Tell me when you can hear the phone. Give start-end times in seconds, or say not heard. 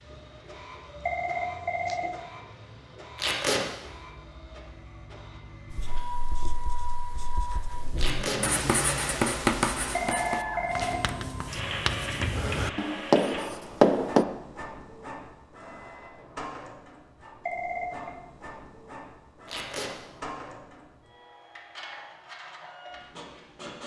1.1-2.1, 9.9-11.1, 17.4-18.2.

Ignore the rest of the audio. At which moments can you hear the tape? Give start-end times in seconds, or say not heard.
3.1-3.6, 8.0-8.4, 19.4-19.9.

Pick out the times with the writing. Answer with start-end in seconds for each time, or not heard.
5.7-14.2.